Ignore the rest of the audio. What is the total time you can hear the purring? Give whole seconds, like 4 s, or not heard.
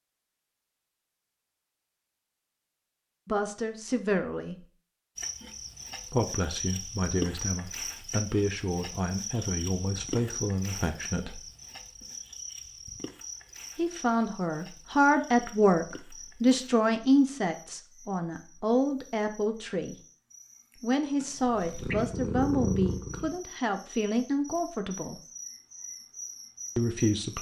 2 s.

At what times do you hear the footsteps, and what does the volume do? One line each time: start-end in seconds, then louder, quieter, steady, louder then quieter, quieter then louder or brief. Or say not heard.
not heard.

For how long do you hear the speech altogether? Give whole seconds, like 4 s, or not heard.
18 s.